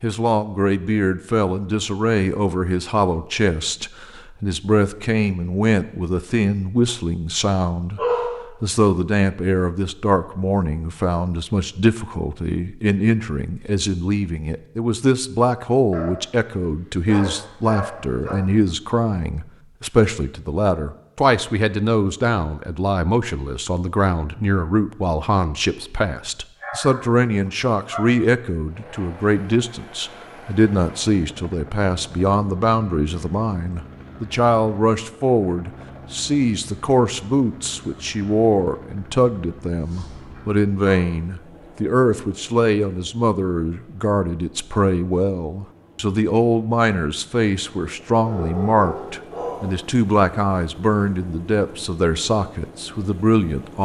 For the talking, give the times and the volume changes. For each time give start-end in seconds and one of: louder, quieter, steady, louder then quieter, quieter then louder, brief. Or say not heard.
0.0-53.7 steady.